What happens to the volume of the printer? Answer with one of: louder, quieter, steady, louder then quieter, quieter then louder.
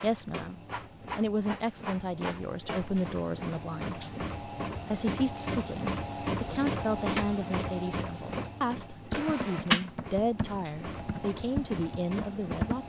louder then quieter.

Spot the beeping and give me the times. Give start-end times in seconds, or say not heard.
not heard.